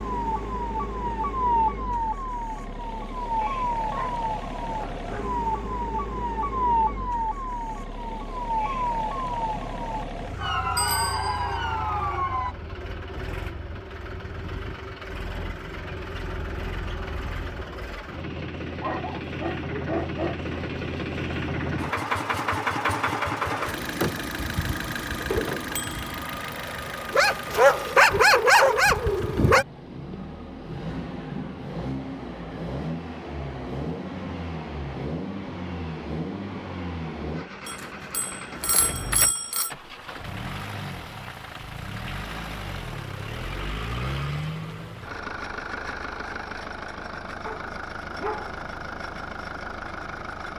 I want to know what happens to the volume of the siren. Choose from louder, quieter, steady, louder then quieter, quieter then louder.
steady.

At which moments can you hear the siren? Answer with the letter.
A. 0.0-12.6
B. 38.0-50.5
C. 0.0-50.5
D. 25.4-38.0
A.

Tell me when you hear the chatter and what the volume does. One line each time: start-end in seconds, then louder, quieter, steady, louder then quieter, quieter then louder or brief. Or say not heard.
not heard.